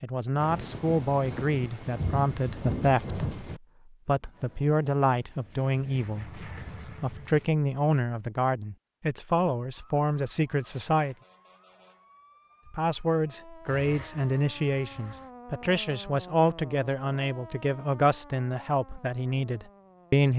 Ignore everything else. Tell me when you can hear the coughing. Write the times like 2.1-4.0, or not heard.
not heard.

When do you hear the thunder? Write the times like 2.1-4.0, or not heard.
0.4-3.6.